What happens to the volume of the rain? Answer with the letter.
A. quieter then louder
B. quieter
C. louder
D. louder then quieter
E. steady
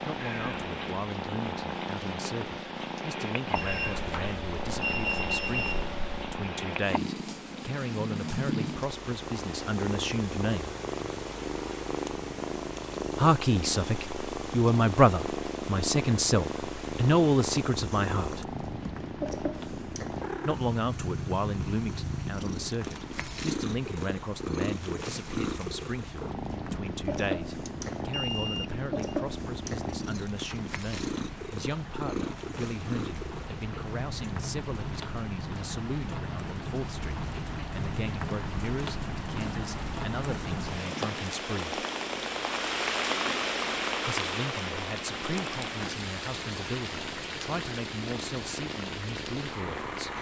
C.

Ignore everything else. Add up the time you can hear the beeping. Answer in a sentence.
The beeping can be heard for 4 seconds in total.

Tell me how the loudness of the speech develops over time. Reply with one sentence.
The volume of the speech goes up, then down.